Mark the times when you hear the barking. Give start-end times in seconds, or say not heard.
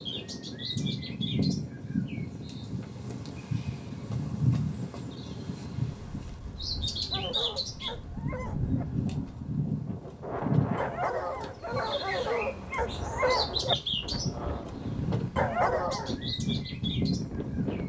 7.1-16.1.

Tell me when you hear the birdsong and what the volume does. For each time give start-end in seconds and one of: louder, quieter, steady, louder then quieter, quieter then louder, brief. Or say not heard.
0.0-17.8 steady.